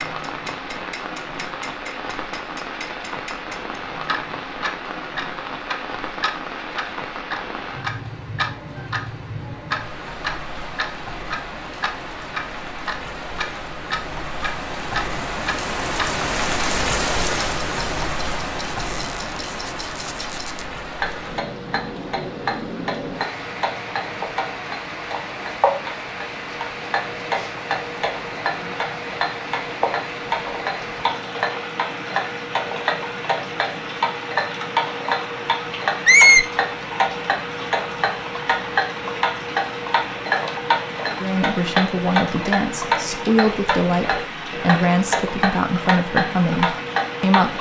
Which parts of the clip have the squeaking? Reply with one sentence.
You can hear the squeaking from 18.9 to 20.6 s and from 36.0 to 36.5 s.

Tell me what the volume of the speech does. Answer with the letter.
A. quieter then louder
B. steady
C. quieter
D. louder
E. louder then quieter
B.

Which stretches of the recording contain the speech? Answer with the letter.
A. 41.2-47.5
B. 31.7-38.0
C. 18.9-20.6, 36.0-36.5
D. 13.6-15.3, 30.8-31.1
A.